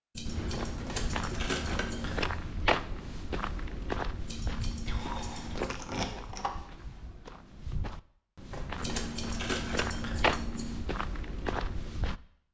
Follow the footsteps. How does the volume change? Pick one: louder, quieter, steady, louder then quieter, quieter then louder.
quieter then louder.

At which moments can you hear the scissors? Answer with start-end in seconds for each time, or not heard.
0.1-2.1, 4.2-5.8, 8.8-10.8.